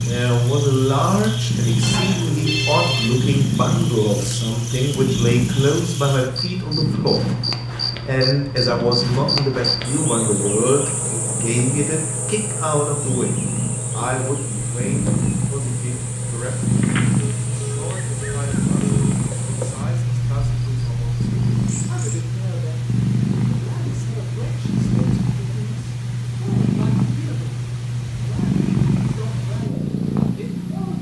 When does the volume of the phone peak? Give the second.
3 s.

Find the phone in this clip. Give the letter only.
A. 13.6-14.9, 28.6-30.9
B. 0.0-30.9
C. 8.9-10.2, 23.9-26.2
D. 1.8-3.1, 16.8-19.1
D.